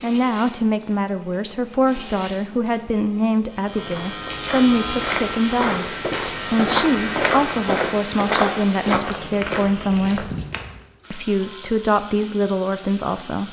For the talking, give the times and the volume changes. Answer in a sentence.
The talking can be heard from 0.0 to 10.3 s, at a steady volume; and briefly from 11.1 to 13.4 s.